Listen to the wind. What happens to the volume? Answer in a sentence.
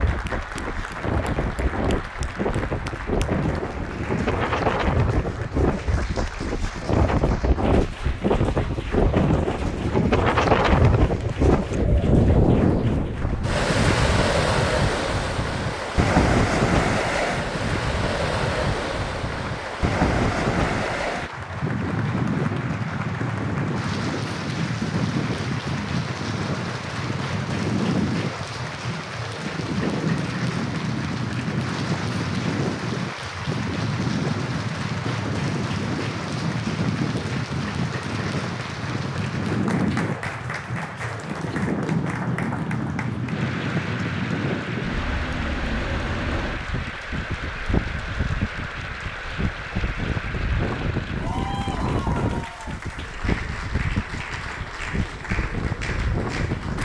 The volume of the wind goes down.